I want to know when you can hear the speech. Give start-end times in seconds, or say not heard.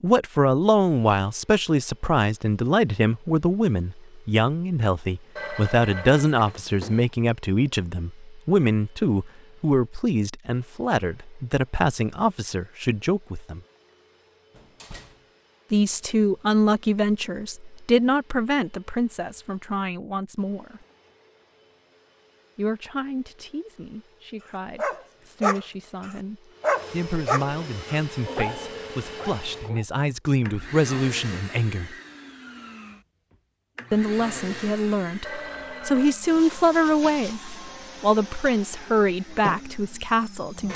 0.0-13.6, 15.7-20.8, 22.6-31.9, 33.9-40.7.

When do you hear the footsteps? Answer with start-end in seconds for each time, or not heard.
not heard.